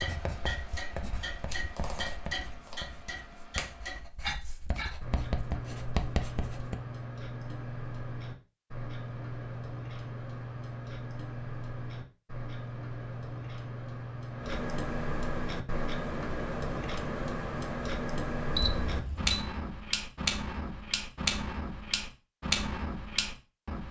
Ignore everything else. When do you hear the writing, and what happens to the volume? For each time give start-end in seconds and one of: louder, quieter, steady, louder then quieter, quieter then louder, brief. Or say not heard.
0.0-6.8 quieter then louder.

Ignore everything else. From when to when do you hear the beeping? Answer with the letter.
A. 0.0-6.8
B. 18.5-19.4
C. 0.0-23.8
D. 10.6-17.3
B.